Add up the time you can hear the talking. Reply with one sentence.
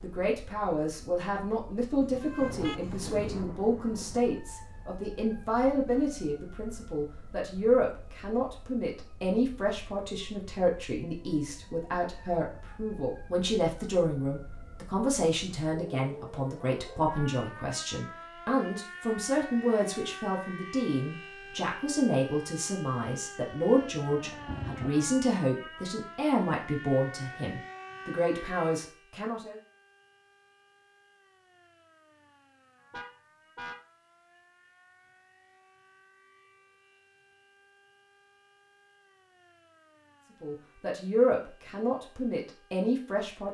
The talking can be heard for 33 seconds in total.